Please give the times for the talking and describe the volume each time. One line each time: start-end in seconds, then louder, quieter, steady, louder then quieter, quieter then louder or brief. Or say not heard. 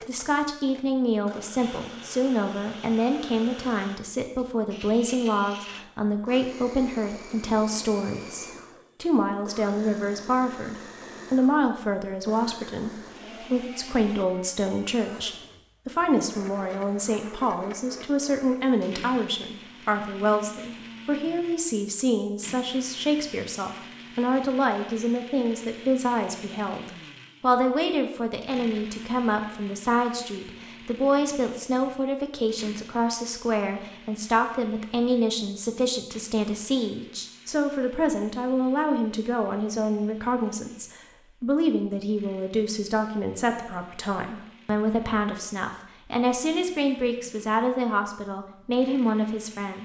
0.1-49.7 steady.